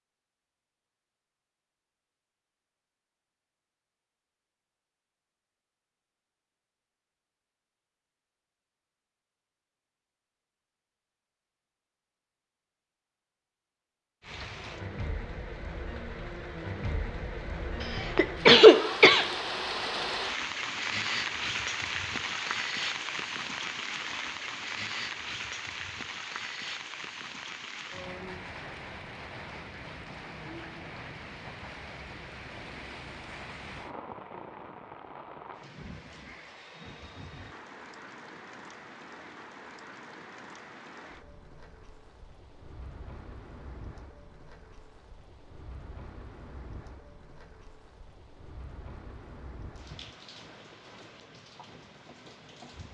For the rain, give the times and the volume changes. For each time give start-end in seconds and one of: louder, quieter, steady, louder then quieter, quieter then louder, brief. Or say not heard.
14.2-52.8 quieter.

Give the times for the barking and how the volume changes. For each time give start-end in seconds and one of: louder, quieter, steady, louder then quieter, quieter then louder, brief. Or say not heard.
not heard.